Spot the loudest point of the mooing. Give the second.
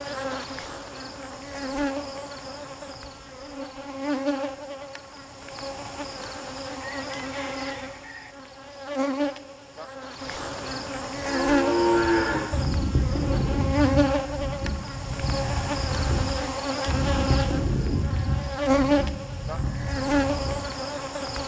12 s.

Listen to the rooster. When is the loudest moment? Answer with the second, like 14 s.
7 s.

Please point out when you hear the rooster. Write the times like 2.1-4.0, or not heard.
6.8-8.3.